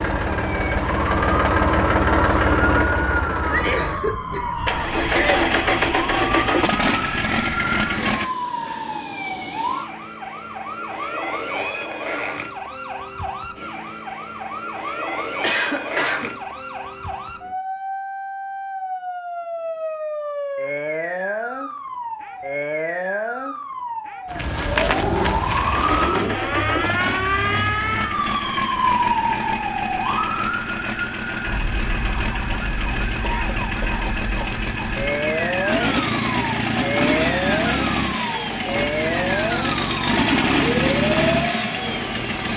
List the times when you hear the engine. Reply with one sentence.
The engine can be heard from 0.0 to 8.3 s and from 25.4 to 42.5 s.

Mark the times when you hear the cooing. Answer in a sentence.
You can hear the cooing from 24.6 to 26.4 s.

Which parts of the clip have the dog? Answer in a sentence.
You can't hear the dog here.